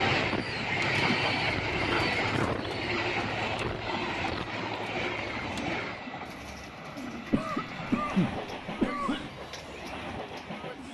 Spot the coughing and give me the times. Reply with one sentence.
You can hear the coughing from 1.9 to 2.5 s and from 7.3 to 9.3 s.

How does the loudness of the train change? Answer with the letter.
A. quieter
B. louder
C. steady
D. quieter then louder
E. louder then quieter
A.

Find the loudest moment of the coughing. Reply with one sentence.
The volume of the coughing peaks at 8 seconds.